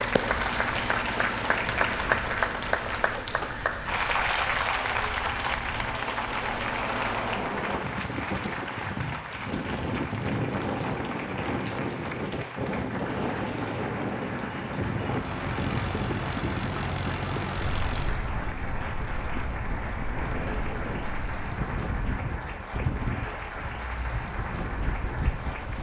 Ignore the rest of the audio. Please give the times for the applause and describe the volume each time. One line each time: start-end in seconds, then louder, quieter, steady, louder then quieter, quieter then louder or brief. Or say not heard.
0.0-25.7 quieter.